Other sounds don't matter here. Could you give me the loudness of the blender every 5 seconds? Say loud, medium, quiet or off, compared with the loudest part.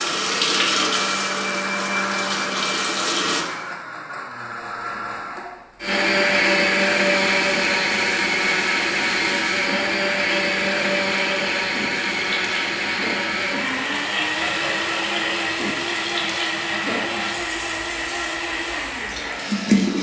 medium, loud, loud, medium.